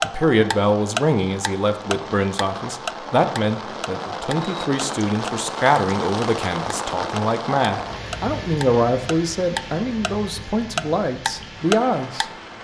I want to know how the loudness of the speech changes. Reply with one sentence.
The loudness of the speech stays about the same.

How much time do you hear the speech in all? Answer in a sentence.
You can hear the speech for 12 seconds altogether.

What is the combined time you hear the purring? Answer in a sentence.
The purring can't be heard in this clip.